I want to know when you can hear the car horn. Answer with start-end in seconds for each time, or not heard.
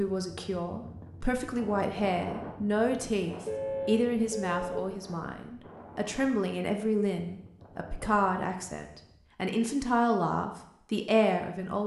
3.5-4.8.